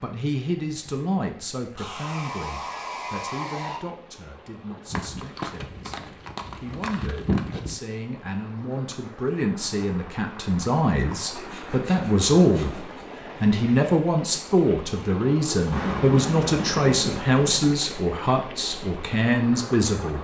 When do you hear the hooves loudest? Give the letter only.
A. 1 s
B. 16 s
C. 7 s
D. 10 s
C.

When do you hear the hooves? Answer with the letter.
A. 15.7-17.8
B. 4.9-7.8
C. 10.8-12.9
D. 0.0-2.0
B.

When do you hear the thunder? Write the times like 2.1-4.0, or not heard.
15.7-17.8.